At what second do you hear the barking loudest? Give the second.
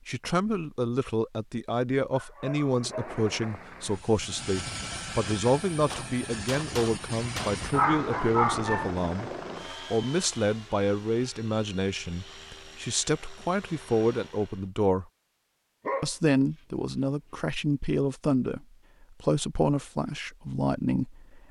8 s.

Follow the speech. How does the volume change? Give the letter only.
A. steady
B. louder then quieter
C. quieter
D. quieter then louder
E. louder
A.